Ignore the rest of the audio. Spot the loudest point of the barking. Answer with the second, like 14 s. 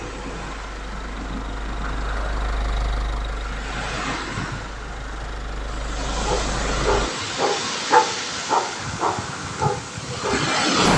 8 s.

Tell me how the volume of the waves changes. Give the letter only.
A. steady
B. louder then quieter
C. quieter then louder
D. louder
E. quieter
D.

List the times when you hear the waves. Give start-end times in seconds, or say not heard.
0.0-10.9.